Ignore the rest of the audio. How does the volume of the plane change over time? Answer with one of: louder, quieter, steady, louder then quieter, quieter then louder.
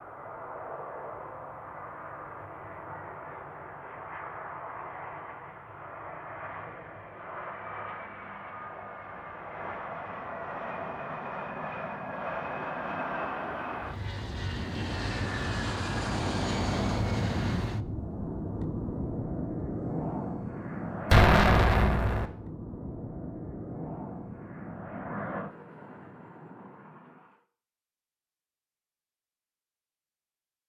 louder then quieter.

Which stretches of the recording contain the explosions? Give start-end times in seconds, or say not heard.
21.1-22.2.